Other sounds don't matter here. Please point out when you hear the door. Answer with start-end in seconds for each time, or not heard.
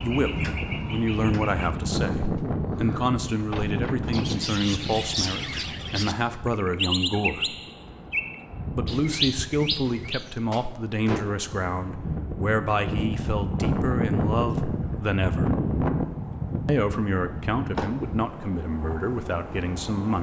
1.6-4.2, 9.8-11.4, 17.8-18.3.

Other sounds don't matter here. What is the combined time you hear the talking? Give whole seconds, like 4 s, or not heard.
18 s.